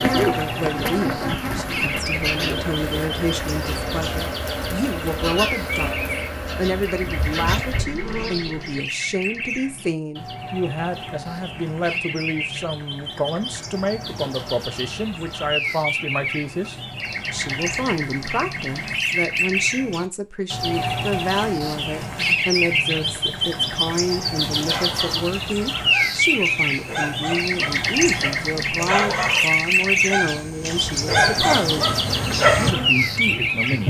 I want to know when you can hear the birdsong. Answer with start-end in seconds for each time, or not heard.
0.0-33.8.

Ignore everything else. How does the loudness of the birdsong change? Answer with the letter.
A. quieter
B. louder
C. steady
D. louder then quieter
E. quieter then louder
B.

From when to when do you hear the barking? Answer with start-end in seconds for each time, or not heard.
24.6-32.7.